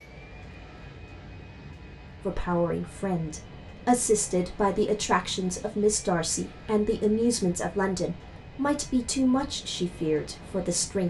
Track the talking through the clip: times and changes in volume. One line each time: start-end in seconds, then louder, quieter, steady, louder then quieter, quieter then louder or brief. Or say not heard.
2.2-11.0 steady.